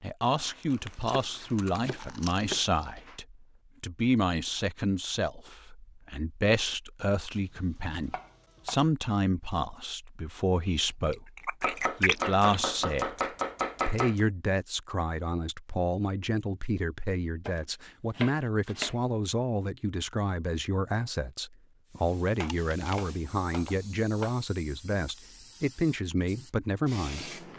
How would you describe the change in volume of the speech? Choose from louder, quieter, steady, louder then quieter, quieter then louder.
steady.